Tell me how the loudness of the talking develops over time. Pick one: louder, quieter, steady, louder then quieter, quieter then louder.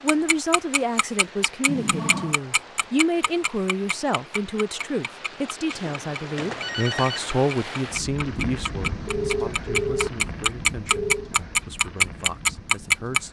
quieter.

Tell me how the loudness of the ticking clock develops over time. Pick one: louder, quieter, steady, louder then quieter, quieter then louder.
quieter then louder.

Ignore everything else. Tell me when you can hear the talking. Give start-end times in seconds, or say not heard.
0.0-13.2.